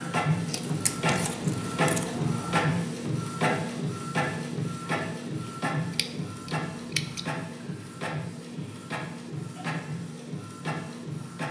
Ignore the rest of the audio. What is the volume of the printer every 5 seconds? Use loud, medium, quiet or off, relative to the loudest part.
loud, medium, medium.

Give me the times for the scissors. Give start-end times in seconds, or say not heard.
0.5-2.7, 5.9-7.3.